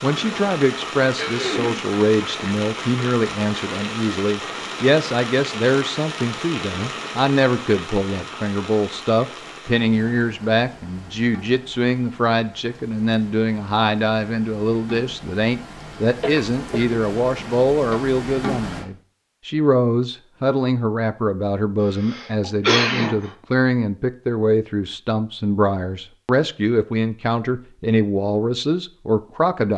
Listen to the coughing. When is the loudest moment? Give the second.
23 s.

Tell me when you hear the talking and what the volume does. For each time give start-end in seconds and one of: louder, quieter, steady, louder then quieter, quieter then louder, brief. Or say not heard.
0.0-29.7 steady.